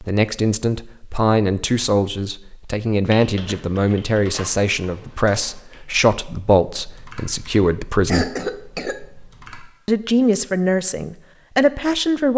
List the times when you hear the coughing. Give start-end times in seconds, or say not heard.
8.1-9.1.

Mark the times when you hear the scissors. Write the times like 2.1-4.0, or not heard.
not heard.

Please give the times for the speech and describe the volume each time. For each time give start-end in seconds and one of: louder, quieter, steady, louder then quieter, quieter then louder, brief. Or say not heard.
0.0-8.3 steady
9.8-12.3 brief.